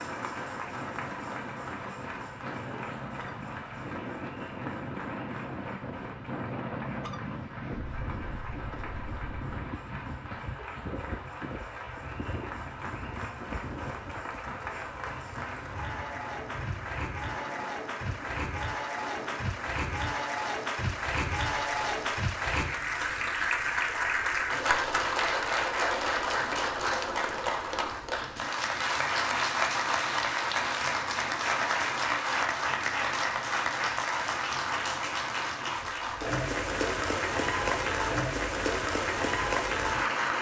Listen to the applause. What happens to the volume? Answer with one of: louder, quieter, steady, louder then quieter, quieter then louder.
louder.